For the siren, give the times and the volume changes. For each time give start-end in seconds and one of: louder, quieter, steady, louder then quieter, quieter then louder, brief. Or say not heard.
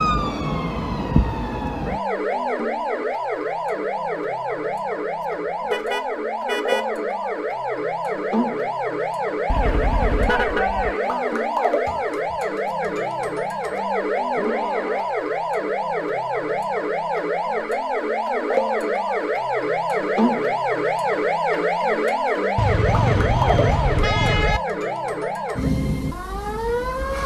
0.0-27.2 steady.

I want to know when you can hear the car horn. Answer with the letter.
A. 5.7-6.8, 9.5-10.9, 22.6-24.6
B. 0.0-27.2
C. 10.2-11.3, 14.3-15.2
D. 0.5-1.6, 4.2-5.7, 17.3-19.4
A.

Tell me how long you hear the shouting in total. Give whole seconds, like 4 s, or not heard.
2 s.